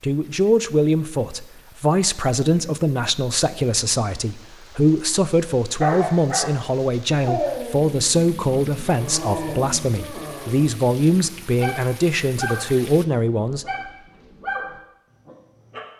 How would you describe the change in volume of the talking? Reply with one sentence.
The volume of the talking stays about the same.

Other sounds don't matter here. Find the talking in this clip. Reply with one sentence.
The talking can be heard from 0.0 to 13.7 s.